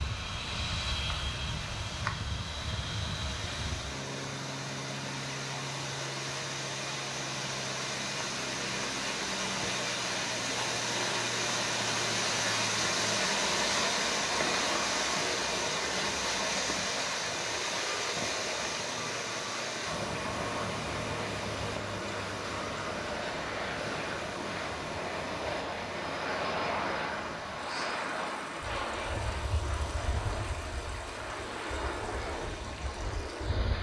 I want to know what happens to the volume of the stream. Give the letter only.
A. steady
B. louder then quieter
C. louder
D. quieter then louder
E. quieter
B.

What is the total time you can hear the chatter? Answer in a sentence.
The chatter can't be heard in this clip.